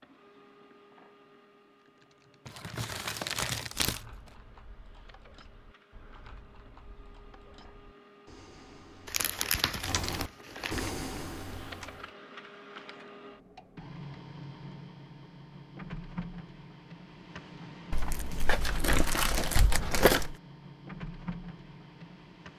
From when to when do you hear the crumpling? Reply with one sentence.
You can hear the crumpling from 2.5 to 4.0 s, from 9.1 to 10.9 s and from 17.9 to 20.4 s.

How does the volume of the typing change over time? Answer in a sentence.
The loudness of the typing goes down, then up.